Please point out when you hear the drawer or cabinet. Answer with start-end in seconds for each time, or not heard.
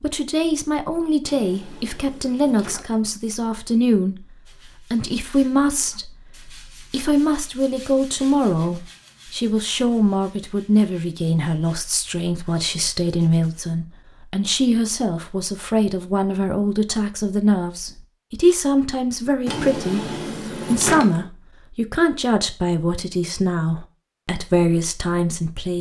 1.2-3.1, 19.4-21.2.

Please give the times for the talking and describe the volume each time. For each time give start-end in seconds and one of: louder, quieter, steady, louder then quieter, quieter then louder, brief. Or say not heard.
0.0-4.2 steady
4.9-25.7 steady.